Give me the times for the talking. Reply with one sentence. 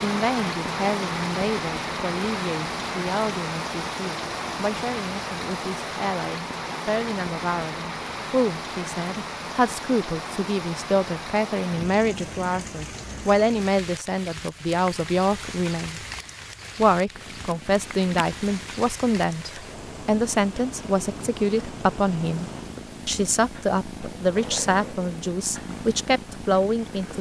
You can hear the talking from 0.0 to 16.0 s and from 16.8 to 27.1 s.